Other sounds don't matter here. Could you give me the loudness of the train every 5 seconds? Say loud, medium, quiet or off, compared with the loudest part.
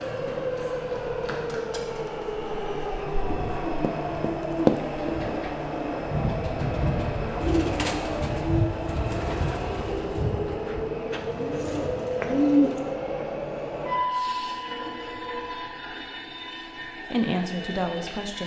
loud, loud, loud, medium.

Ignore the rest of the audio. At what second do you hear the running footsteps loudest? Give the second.
5 s.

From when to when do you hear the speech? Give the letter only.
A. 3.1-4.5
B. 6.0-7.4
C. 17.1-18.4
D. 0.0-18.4
C.